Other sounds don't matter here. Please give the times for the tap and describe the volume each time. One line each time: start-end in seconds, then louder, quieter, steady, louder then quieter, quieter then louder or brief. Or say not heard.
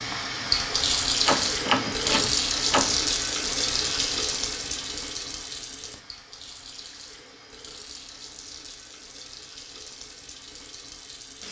0.0-11.4 quieter.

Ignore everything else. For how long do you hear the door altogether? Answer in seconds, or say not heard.
2 s.